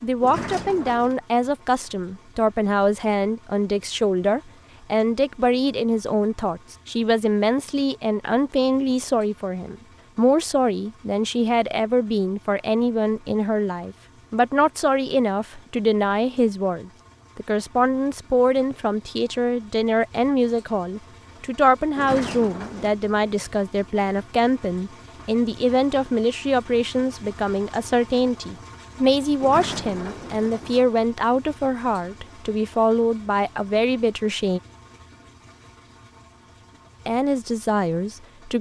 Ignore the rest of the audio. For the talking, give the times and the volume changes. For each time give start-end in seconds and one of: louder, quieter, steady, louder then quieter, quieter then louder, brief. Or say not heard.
0.0-34.6 steady
37.0-38.5 brief.